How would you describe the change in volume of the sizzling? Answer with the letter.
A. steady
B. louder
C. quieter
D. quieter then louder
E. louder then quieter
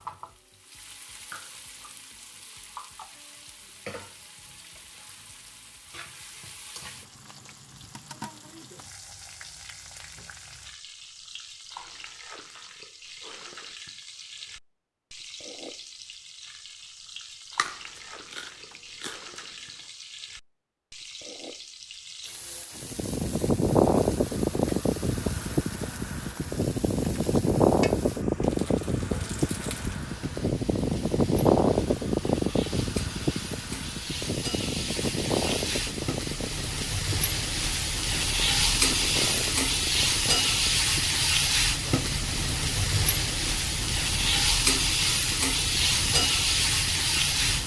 B.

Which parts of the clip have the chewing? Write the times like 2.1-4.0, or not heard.
17.6-19.4.